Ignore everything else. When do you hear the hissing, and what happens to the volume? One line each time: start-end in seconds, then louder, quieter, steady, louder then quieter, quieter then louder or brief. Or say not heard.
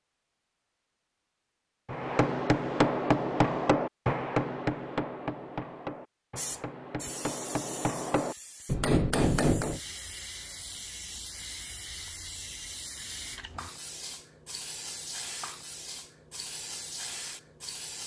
6.3-18.0 steady.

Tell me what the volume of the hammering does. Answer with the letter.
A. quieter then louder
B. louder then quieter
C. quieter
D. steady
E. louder
A.